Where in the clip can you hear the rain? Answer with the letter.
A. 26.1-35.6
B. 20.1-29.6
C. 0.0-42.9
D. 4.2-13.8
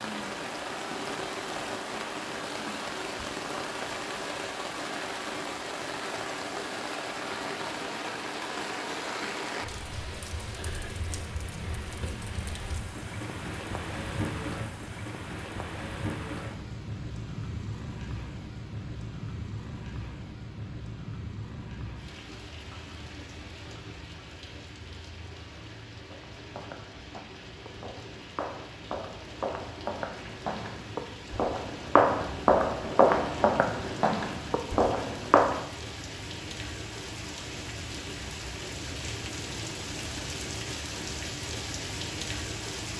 C.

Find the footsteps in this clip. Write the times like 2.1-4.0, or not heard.
26.1-35.6.